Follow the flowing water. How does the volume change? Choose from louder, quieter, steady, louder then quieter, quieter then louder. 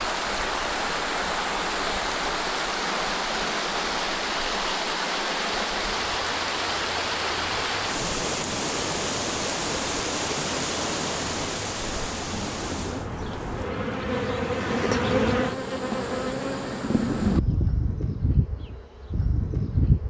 steady.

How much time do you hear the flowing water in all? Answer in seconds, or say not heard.
13 s.